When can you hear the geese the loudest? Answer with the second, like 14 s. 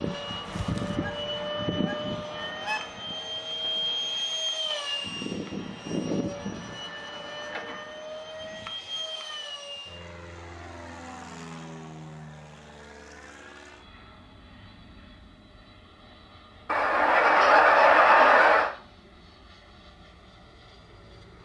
18 s.